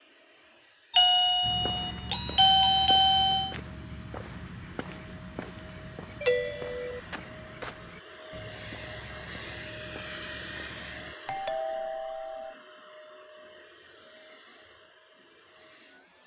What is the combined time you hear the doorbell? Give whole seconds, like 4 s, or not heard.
5 s.